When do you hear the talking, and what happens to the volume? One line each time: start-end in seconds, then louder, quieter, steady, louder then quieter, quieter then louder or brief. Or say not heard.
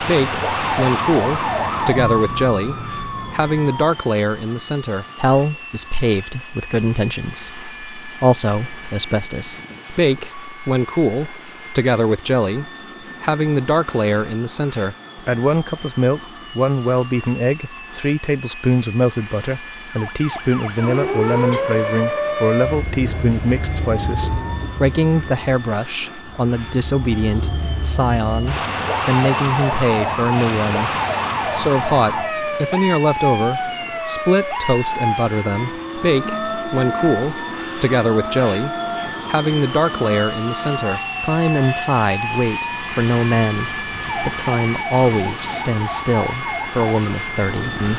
0.0-47.9 steady.